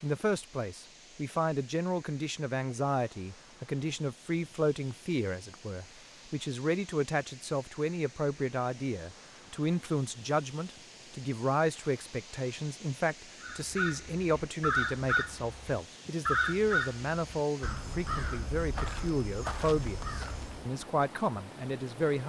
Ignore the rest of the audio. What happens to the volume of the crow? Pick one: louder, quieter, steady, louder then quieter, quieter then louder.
quieter.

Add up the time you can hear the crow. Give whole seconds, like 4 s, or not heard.
7 s.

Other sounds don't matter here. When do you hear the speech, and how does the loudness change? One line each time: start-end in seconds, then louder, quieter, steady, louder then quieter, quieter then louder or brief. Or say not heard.
0.0-22.2 steady.